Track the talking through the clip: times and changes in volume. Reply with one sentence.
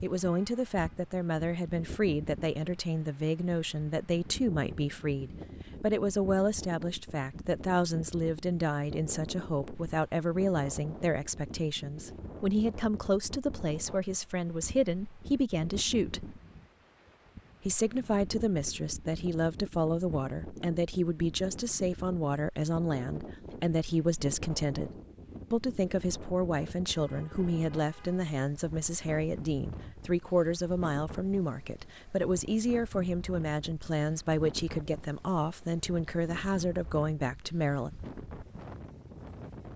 You can hear the talking from 0.0 to 16.4 s, at a steady volume; and from 17.6 to 37.9 s, at a steady volume.